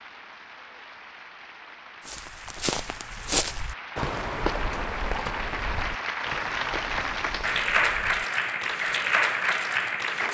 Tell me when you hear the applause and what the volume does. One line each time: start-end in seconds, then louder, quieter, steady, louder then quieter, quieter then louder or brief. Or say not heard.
0.0-10.2 louder.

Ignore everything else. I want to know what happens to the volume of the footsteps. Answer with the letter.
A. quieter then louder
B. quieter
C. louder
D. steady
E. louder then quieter
B.